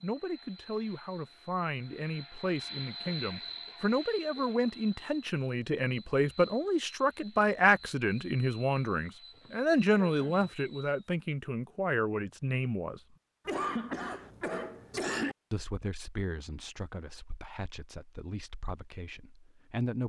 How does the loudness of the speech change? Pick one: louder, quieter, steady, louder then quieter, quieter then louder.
louder then quieter.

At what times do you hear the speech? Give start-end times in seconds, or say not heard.
0.0-13.0, 15.5-20.0.